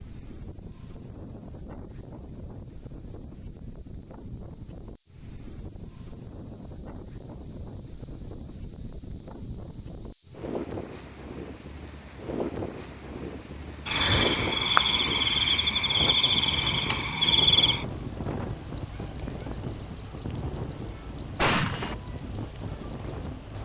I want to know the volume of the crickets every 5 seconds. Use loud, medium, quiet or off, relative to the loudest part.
medium, loud, loud, loud, loud.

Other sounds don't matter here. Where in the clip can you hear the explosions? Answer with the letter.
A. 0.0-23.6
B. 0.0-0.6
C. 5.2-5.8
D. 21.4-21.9
D.